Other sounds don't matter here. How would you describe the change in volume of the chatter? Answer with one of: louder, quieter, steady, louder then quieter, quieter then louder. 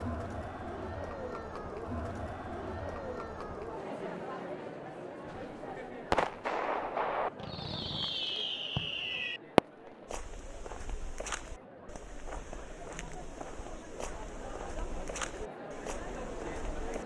quieter then louder.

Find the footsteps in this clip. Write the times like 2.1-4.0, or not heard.
10.1-17.0.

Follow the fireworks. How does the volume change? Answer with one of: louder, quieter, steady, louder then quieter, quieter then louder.
quieter then louder.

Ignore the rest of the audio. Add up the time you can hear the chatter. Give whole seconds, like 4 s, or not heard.
17 s.